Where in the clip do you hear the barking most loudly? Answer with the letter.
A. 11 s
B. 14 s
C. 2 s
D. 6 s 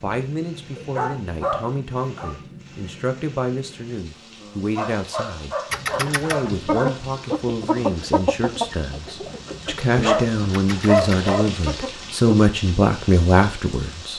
A.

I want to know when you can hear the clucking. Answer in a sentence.
You can hear the clucking from 5.7 to 12.4 s.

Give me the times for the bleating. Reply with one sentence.
The bleating can't be heard in this clip.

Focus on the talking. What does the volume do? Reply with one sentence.
The loudness of the talking goes up.